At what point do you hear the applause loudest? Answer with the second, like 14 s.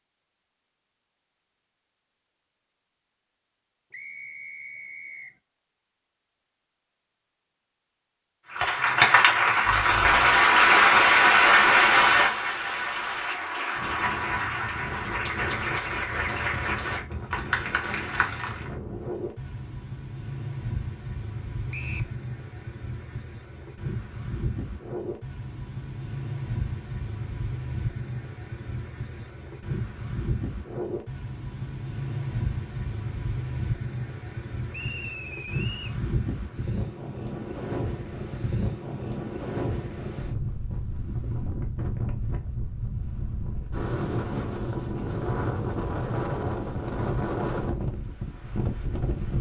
11 s.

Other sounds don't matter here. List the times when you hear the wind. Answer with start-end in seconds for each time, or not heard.
13.8-49.3.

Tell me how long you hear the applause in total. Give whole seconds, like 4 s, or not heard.
10 s.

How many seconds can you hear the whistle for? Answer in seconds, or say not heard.
3 s.